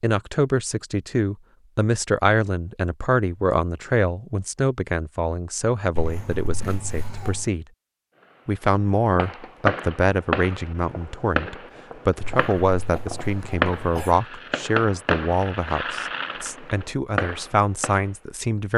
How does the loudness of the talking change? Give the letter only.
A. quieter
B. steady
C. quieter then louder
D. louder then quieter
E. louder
B.